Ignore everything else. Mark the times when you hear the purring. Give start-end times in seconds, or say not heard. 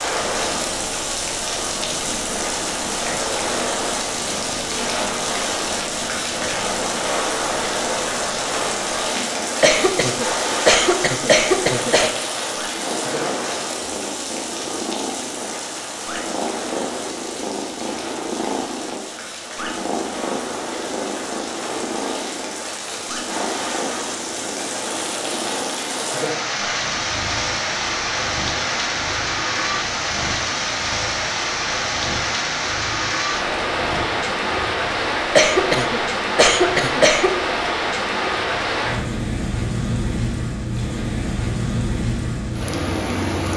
0.0-34.6.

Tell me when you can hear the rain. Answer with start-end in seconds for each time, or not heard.
0.0-43.5.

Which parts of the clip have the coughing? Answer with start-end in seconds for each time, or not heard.
9.6-12.2, 35.4-37.4.